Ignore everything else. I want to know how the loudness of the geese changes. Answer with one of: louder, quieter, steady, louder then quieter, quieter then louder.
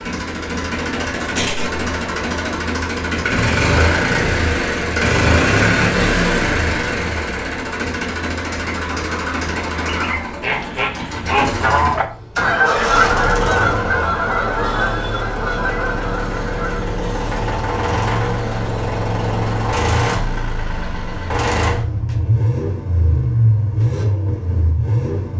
louder then quieter.